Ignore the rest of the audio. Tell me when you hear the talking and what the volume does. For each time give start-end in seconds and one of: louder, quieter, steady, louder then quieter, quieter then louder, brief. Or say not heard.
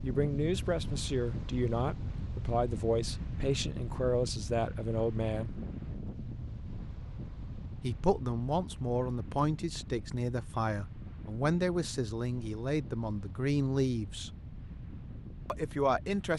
0.0-5.5 steady
7.8-14.3 steady
15.4-16.3 brief.